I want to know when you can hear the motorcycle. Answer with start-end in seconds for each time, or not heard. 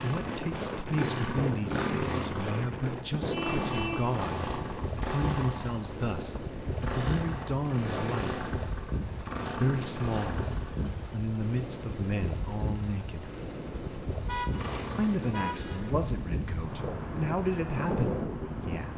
0.0-18.9.